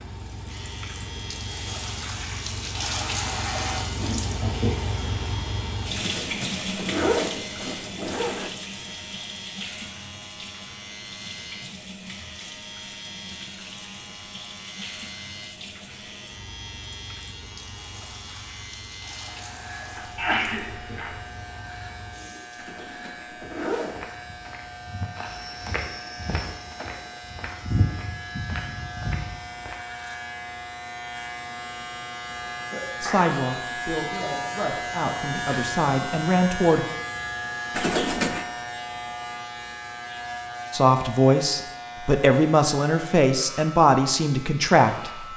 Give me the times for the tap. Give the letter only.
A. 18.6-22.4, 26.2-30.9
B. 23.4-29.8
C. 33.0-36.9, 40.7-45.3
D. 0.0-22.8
D.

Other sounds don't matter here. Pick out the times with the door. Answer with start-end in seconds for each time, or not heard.
not heard.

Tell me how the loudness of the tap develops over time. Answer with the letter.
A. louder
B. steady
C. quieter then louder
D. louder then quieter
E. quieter
E.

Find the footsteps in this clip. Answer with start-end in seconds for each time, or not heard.
23.4-29.8.